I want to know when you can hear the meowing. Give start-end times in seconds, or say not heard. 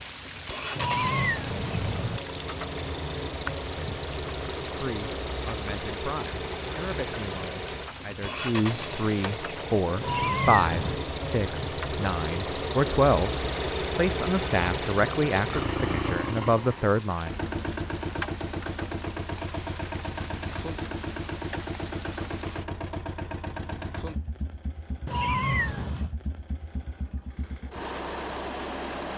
0.8-2.2, 10.0-11.0, 25.1-26.1.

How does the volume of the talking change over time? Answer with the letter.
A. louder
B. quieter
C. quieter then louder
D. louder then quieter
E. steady
A.